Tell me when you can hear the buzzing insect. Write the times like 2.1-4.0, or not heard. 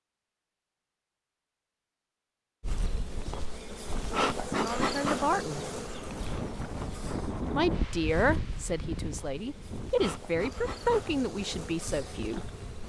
2.6-12.8.